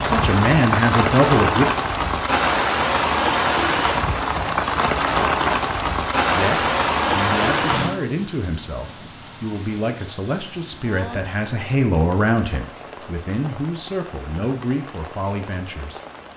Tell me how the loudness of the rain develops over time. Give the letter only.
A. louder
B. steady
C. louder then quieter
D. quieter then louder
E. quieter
E.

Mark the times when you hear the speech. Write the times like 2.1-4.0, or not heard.
0.0-1.6, 6.3-16.0.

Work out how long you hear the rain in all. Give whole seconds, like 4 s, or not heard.
16 s.